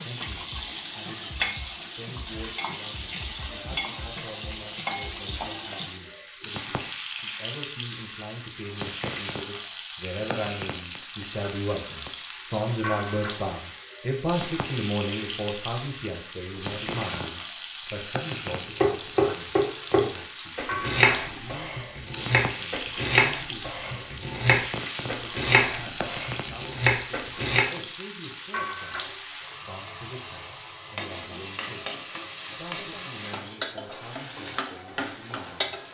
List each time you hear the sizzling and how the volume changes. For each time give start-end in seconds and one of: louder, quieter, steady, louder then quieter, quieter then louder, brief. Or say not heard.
0.0-35.8 steady.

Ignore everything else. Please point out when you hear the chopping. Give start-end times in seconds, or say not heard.
18.5-27.6.